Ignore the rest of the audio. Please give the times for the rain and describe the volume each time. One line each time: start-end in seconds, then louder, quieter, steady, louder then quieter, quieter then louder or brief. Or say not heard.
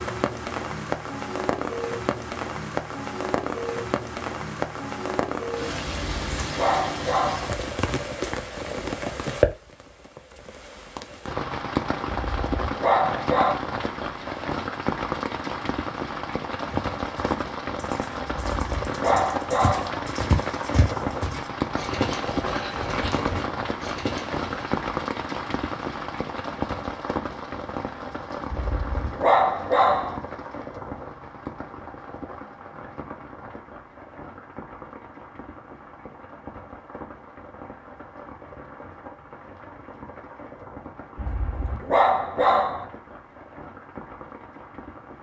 0.0-45.1 quieter.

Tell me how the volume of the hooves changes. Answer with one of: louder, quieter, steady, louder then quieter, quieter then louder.
louder.